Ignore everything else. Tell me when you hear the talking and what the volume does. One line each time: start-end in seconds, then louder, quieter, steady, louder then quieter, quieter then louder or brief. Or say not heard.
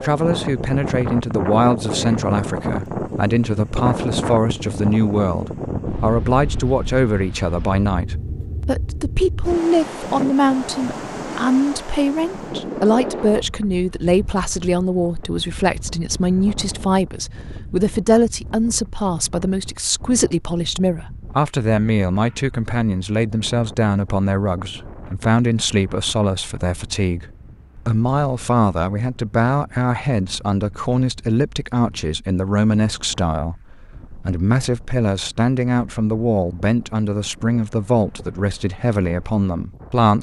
0.0-40.1 steady.